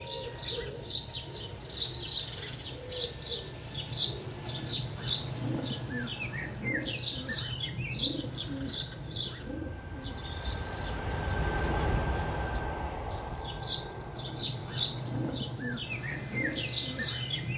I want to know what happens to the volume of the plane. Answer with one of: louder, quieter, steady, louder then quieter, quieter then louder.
louder then quieter.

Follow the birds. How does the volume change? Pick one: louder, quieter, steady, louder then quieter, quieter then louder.
quieter then louder.